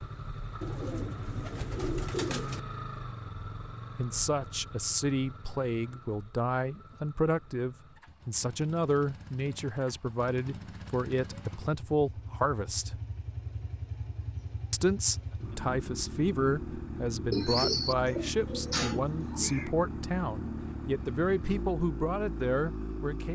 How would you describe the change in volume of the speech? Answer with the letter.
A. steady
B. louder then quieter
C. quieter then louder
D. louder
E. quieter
A.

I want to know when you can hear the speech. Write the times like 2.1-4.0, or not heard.
4.0-12.9, 14.7-23.3.